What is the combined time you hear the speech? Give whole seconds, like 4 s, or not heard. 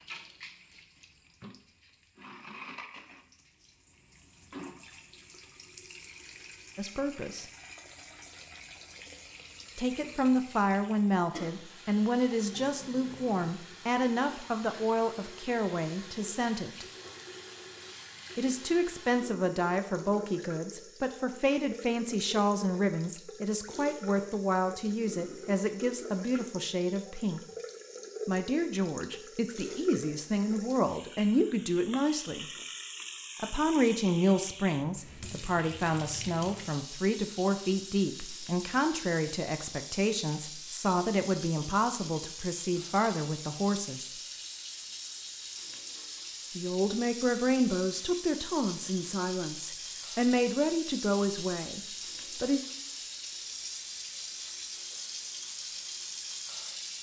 38 s.